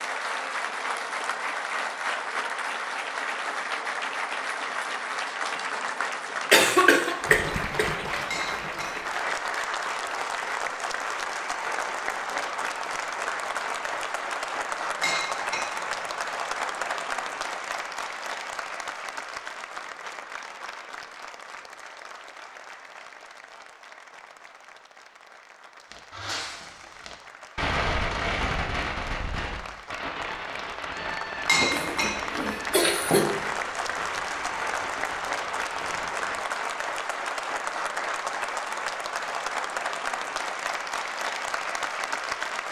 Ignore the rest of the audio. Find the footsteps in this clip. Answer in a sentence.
The footsteps can't be heard in this clip.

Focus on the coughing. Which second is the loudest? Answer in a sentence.
The volume of the coughing peaks at 7 seconds.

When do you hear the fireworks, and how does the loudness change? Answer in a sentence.
The fireworks can be heard from 25.9 to 36.4 s, getting quieter.